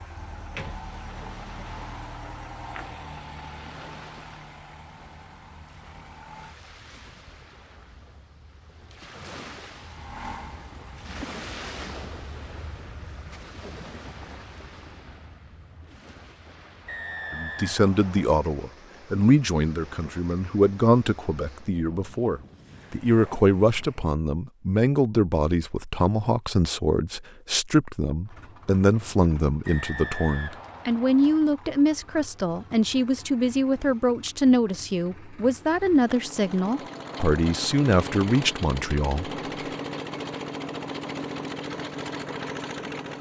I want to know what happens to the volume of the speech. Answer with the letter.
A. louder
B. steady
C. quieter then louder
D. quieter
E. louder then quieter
B.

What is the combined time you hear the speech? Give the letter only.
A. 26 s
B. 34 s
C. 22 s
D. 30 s
C.